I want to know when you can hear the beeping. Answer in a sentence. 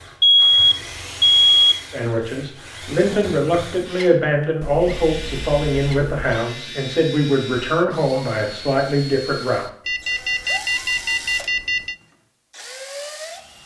You can hear the beeping from 0.2 to 1.8 s, from 4.6 to 6.5 s and from 9.8 to 11.9 s.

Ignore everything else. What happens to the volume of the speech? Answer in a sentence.
The loudness of the speech stays about the same.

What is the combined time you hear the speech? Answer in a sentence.
You can hear the speech for 8 seconds altogether.